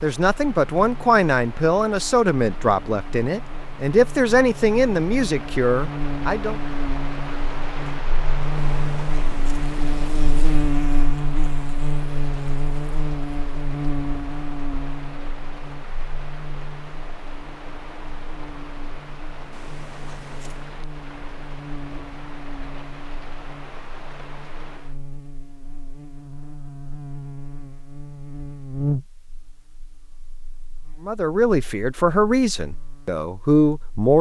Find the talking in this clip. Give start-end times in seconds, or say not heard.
0.0-6.6, 31.0-34.1.